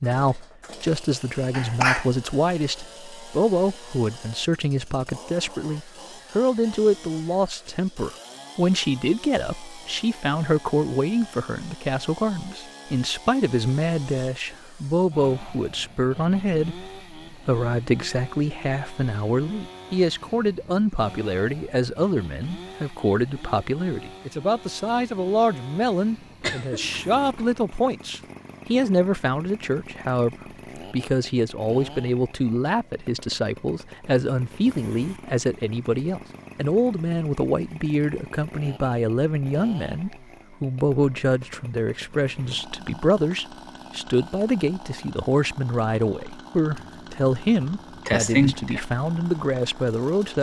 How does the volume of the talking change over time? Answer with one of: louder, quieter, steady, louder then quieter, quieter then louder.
steady.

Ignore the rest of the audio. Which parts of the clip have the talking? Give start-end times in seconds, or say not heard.
0.0-50.3.